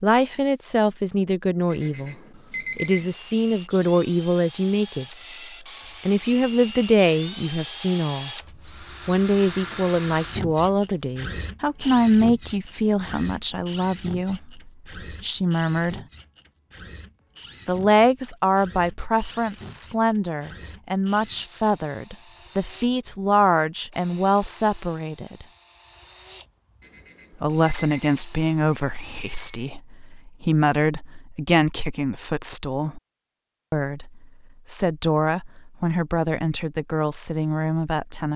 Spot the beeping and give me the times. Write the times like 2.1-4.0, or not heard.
1.7-3.1, 26.8-28.1.